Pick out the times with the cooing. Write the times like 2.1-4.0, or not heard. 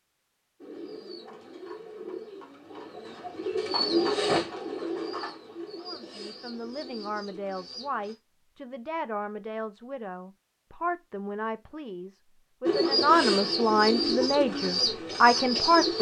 0.6-8.2, 12.7-15.9.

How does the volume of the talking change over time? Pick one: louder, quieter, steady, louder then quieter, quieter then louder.
louder.